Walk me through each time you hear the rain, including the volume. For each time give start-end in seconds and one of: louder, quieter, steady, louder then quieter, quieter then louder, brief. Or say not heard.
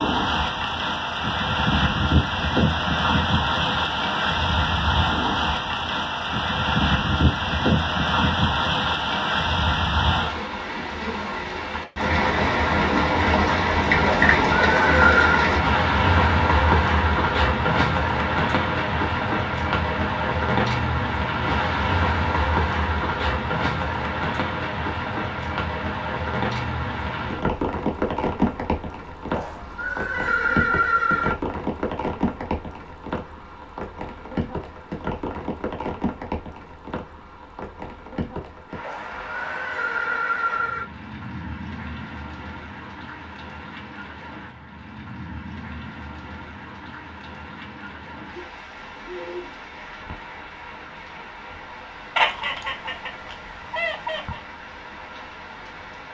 0.0-56.0 quieter.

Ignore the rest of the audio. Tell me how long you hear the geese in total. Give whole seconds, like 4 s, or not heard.
2 s.